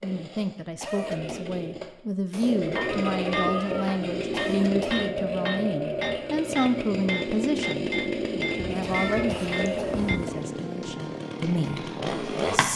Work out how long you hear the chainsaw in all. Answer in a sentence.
You can hear the chainsaw for 13 seconds altogether.